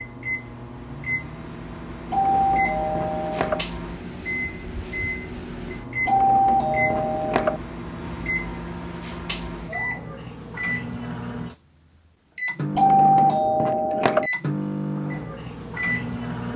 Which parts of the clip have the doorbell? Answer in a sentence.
The doorbell can be heard from 2.1 to 3.6 s, from 6.0 to 7.6 s and from 12.8 to 14.3 s.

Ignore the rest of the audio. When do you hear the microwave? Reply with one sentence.
The microwave can be heard from 0.0 to 16.5 s.